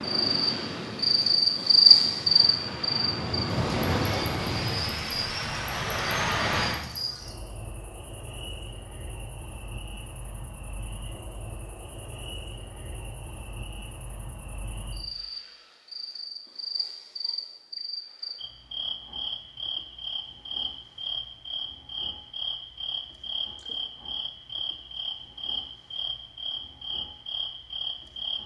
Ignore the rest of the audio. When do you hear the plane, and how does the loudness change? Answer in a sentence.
You can hear the plane from 0.0 to 6.8 s, getting louder.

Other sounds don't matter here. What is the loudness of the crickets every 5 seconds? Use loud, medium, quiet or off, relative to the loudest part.
loud, quiet, quiet, quiet, quiet, quiet.